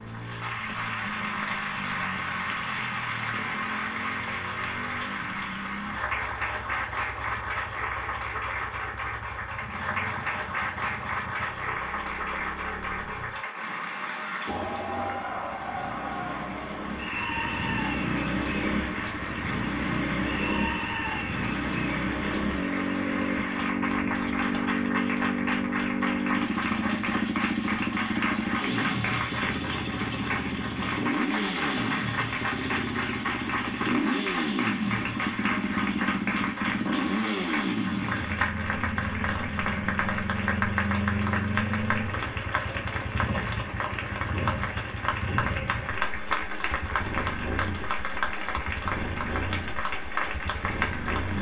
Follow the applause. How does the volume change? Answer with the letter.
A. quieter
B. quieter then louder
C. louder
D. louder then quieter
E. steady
E.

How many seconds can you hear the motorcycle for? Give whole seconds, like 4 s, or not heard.
51 s.